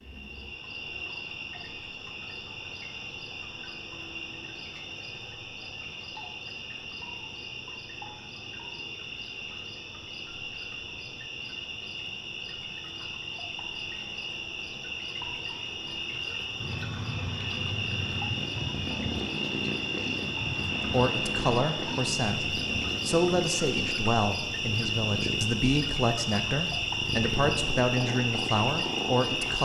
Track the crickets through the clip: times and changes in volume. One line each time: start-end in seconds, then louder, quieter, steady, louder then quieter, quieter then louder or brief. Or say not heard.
0.0-29.6 louder.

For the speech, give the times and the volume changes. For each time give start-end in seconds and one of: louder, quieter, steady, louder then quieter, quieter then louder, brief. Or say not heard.
20.9-29.6 steady.